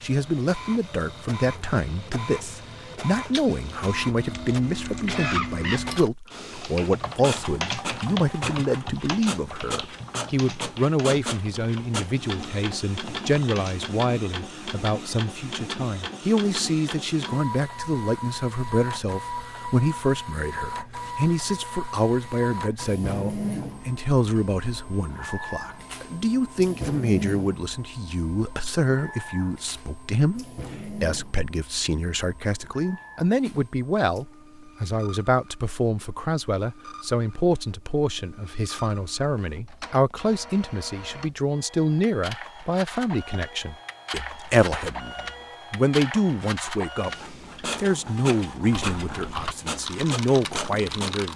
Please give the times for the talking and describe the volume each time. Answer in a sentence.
The talking can be heard from 0.0 to 51.3 s, at a steady volume.